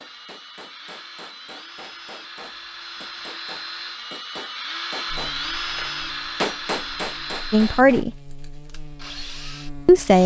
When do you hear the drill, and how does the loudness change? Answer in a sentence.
The drill can be heard from 0.0 to 10.2 s, getting louder then quieter.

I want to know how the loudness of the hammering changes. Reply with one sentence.
The volume of the hammering goes up.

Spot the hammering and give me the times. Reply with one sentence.
The hammering can be heard from 0.0 to 8.1 s.